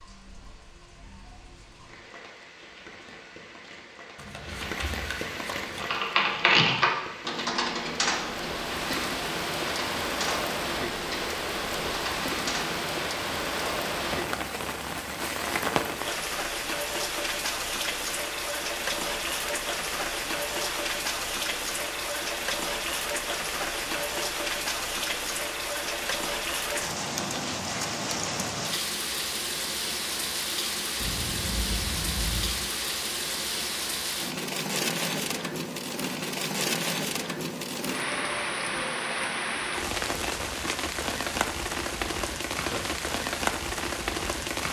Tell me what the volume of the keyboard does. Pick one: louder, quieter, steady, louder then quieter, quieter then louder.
quieter.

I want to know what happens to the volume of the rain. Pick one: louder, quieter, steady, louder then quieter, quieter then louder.
louder.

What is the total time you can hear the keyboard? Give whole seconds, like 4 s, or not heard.
7 s.